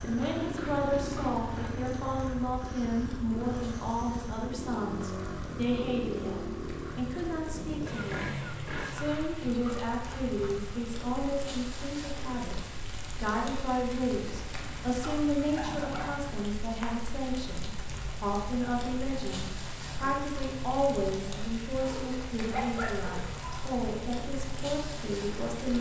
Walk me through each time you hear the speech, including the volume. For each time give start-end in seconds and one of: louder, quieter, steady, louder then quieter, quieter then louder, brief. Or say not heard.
0.0-25.7 steady.